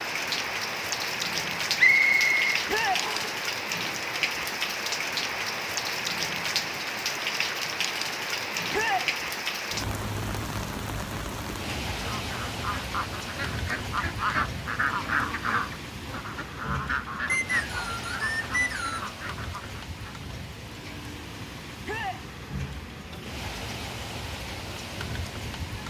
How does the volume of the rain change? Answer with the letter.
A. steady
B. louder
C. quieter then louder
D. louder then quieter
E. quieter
E.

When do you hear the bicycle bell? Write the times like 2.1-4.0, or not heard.
not heard.